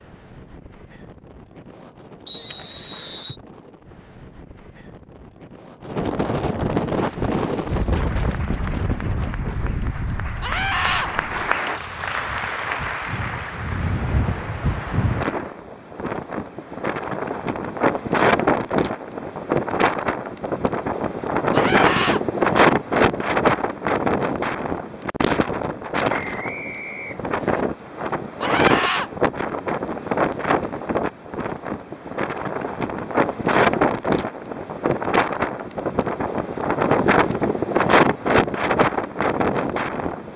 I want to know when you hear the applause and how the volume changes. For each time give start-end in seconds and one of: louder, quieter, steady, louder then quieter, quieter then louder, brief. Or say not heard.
6.9-15.6 louder then quieter.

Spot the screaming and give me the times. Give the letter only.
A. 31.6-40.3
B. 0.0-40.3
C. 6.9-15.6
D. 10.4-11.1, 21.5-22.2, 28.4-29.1
D.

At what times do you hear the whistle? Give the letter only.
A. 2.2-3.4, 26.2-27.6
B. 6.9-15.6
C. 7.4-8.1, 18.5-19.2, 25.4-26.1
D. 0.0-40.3
A.